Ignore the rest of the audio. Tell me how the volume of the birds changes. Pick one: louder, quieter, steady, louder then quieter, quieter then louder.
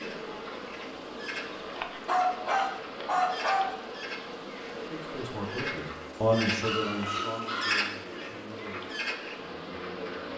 louder then quieter.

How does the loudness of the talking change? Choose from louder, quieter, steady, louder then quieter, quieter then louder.
louder then quieter.